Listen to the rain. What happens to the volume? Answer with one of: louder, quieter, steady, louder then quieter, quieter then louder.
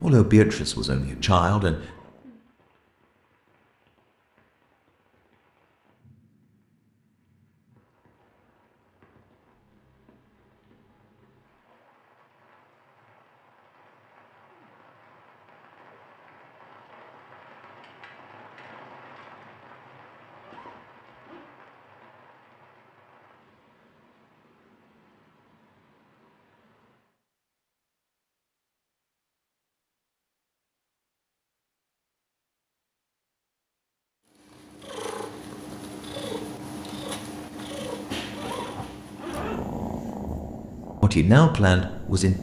louder then quieter.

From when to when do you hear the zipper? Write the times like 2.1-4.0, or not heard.
1.8-2.6, 20.4-21.5, 38.3-39.6.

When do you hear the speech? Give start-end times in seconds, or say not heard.
0.0-1.8, 41.0-42.3.